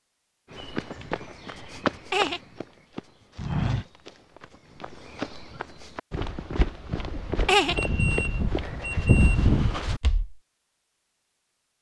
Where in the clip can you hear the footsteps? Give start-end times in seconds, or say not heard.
0.5-10.3.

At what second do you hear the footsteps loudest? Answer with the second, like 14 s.
9 s.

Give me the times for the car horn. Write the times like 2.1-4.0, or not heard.
not heard.